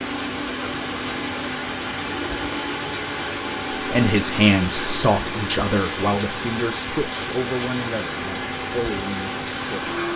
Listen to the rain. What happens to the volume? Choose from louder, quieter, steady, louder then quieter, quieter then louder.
steady.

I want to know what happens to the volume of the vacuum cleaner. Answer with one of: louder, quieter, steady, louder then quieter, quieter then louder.
steady.